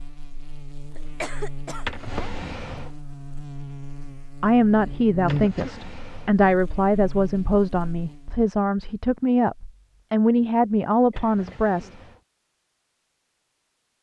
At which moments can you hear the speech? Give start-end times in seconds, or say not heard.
4.4-11.9.